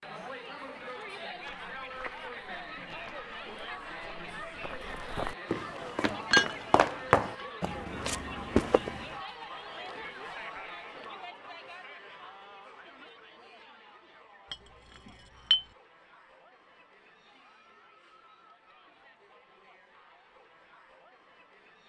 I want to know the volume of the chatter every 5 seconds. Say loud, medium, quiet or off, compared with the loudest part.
loud, loud, medium, quiet, quiet.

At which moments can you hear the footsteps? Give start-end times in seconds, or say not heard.
1.3-9.1.